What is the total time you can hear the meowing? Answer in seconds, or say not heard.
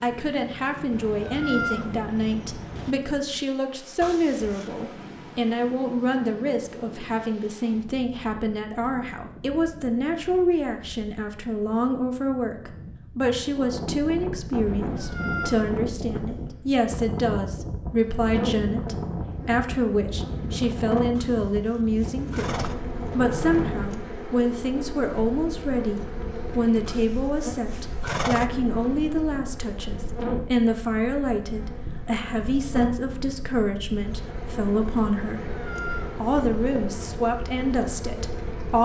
5 s.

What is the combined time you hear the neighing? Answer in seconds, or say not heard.
4 s.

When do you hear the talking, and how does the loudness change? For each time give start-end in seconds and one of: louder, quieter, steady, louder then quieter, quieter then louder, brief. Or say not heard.
0.0-35.5 steady
36.0-38.8 brief.